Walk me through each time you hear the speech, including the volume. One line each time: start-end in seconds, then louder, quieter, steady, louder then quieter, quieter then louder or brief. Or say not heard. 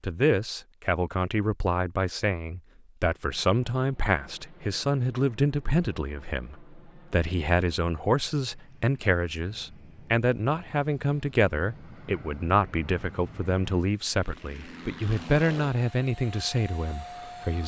0.0-17.6 steady.